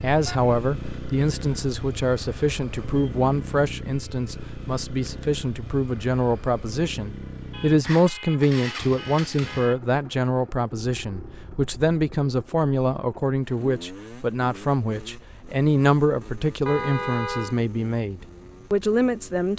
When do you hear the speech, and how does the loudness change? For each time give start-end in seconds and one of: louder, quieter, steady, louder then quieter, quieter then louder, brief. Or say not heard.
0.0-19.5 steady.